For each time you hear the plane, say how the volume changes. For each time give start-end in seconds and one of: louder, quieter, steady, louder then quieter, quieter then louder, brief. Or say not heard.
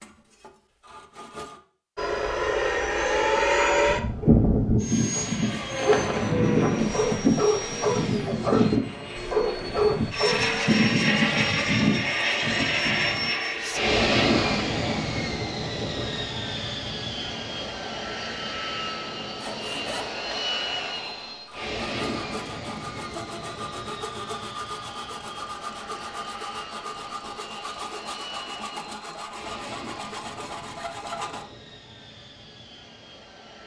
1.9-33.6 quieter.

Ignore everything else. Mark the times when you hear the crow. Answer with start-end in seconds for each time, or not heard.
not heard.